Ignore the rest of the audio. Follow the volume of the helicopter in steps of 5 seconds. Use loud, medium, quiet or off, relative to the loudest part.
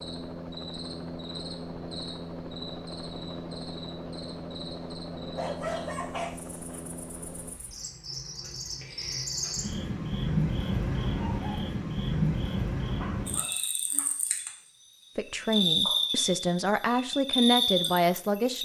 loud, loud, off, off.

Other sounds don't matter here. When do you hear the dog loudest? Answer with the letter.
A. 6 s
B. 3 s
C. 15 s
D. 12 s
A.